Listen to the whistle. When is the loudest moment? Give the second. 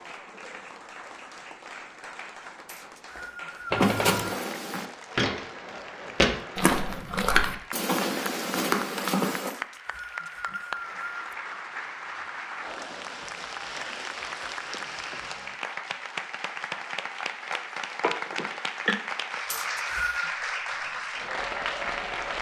20 s.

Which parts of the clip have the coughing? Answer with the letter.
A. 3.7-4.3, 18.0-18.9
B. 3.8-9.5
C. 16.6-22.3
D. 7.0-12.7
A.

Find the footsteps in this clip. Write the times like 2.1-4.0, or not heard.
3.8-9.5.